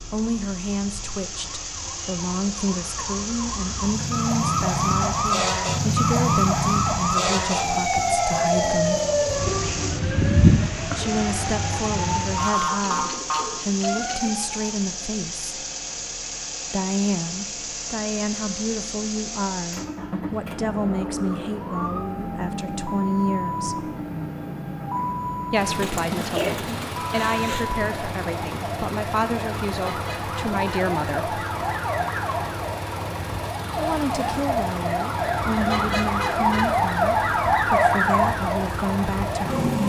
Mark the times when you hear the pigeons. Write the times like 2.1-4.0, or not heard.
12.7-14.3, 25.8-27.7.